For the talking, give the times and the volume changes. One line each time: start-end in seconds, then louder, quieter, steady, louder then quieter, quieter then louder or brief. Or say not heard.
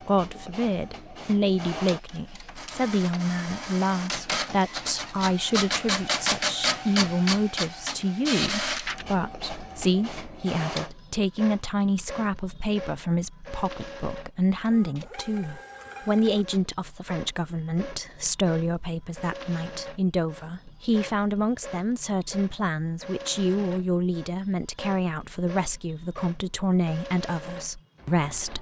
0.1-28.5 steady.